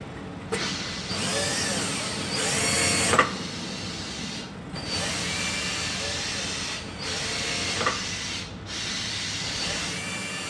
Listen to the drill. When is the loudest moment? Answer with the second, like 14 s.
3 s.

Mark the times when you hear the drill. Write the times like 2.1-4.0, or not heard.
0.0-10.4.